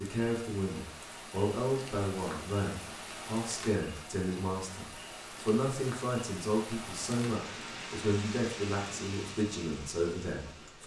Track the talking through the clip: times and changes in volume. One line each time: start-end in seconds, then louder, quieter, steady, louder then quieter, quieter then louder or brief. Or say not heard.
0.0-10.8 steady.